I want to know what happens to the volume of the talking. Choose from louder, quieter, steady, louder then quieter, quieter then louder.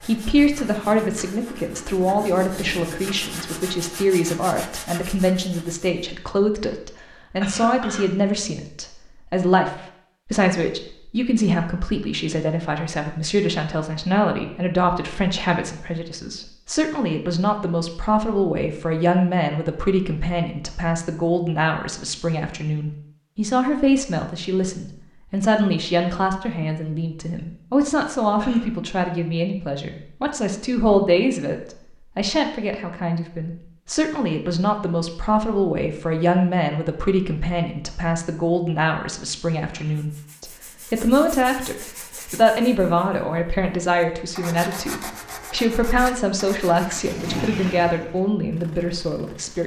steady.